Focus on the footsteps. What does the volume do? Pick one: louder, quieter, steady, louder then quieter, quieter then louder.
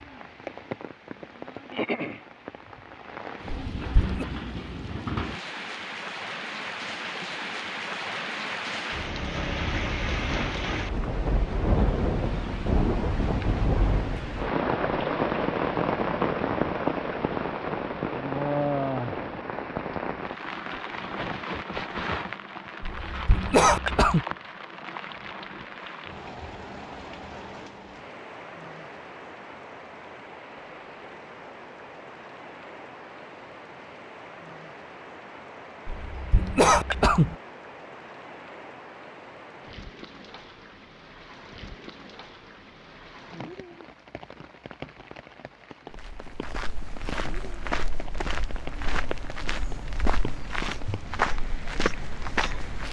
louder.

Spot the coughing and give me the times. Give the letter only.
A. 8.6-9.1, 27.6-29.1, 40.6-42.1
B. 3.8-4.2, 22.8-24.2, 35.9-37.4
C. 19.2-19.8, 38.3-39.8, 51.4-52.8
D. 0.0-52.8
B.